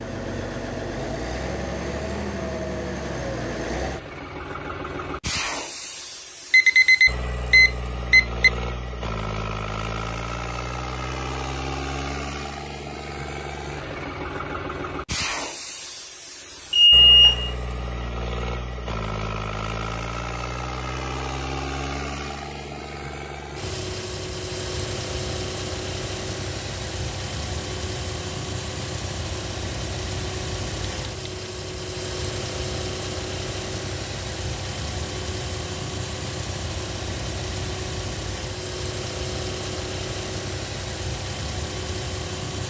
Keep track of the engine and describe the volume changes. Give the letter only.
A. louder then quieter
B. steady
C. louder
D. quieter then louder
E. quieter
B.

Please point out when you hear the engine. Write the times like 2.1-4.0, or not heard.
0.0-42.6.